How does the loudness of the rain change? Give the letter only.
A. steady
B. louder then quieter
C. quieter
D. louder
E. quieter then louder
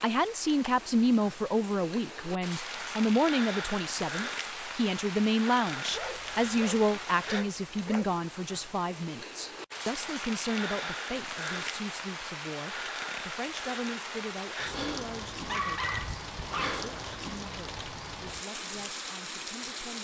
A.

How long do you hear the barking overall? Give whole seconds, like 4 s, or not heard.
4 s.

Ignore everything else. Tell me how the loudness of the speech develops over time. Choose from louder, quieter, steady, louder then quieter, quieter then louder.
quieter.